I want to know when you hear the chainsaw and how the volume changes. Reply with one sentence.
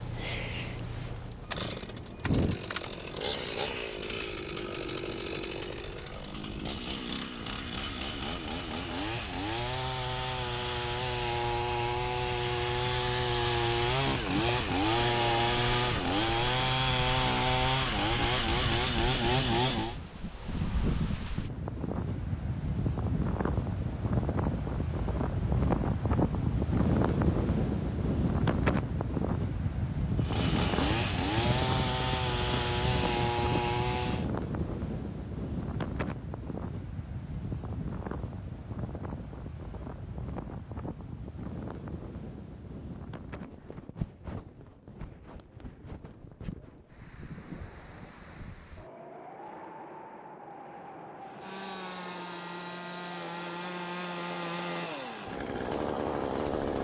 You can hear the chainsaw from 0.0 to 19.9 s, getting louder; from 30.2 to 34.3 s, at a steady volume; and from 51.2 to 56.7 s, getting louder.